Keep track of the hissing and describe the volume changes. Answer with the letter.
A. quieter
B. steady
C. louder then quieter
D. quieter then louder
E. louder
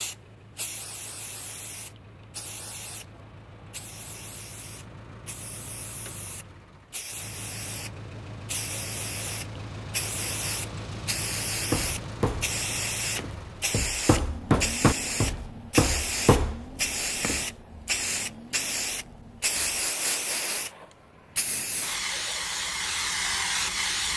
E.